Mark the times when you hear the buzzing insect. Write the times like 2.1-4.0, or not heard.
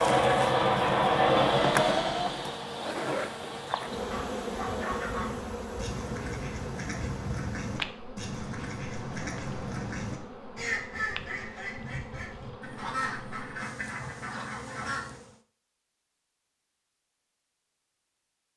0.0-15.4.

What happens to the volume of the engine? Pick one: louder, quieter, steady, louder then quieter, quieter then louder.
quieter.